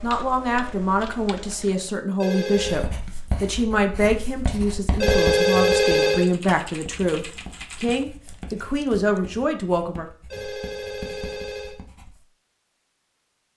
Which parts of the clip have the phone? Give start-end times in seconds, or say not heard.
2.2-2.9, 5.0-6.3, 10.3-11.8.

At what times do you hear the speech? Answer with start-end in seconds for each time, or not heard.
0.0-10.1.